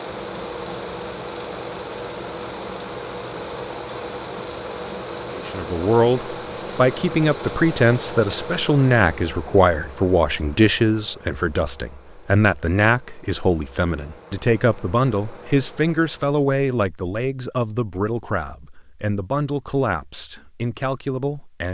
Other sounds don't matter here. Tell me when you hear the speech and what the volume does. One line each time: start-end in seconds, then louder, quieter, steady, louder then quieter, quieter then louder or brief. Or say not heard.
5.3-21.6 quieter.